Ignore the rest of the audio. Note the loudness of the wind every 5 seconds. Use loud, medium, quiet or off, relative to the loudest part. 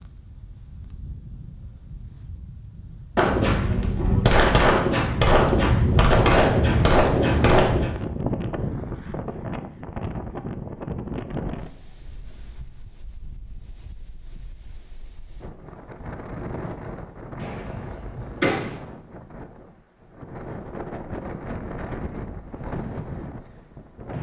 quiet, loud, medium, medium, medium.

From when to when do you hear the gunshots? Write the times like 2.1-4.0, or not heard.
3.1-7.9, 17.4-18.8.